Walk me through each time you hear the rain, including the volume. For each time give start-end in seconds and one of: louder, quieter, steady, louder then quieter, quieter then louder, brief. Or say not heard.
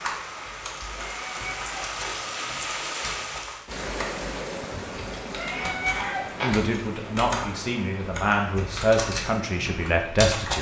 0.0-10.3 quieter.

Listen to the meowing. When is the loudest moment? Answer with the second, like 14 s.
6 s.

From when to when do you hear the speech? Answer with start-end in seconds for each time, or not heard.
6.4-10.5.